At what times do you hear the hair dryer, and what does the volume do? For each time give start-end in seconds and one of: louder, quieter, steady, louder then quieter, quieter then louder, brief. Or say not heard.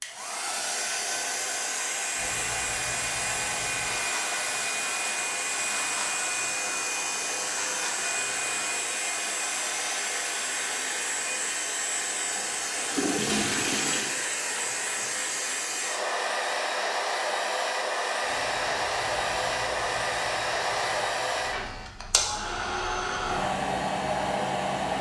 0.0-24.9 steady.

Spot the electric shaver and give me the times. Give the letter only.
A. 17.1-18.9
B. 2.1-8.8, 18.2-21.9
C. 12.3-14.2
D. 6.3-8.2
B.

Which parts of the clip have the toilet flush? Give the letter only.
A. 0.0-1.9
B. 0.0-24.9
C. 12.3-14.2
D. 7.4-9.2
C.